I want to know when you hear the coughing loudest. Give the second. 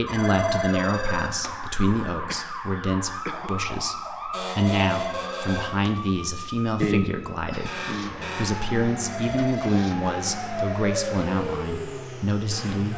7 s.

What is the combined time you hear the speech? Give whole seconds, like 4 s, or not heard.
13 s.